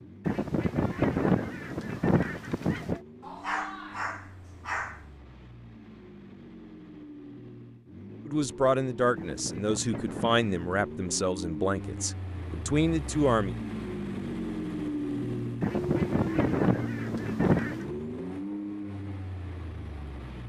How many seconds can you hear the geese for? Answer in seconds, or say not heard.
7 s.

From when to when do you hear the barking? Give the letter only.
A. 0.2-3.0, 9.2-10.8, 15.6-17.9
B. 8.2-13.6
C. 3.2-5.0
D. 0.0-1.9
C.